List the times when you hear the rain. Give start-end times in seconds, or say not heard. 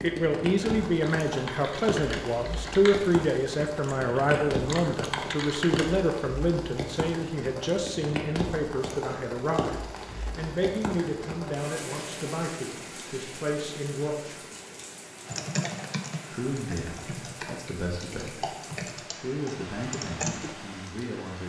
0.0-21.4.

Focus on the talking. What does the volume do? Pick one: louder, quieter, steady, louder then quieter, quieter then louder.
quieter.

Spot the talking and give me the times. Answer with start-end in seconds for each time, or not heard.
0.0-14.4, 16.3-21.4.